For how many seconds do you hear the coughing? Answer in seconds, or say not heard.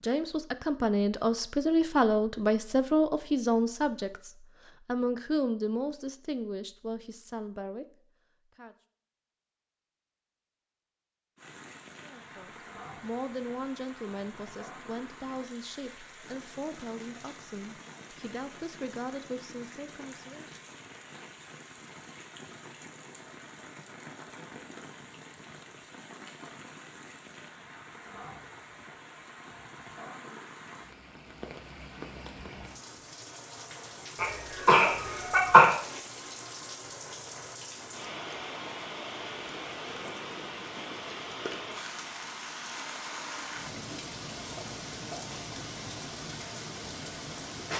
2 s.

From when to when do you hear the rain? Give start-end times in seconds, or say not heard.
11.3-47.7.